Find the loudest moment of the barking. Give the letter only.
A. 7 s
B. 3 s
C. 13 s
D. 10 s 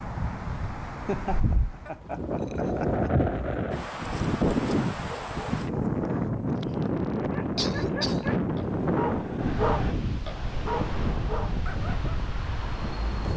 D.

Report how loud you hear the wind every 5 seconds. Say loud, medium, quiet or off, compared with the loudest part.
loud, loud, medium.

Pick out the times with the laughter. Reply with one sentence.
You can hear the laughter from 0.8 to 3.1 s and from 7.5 to 8.4 s.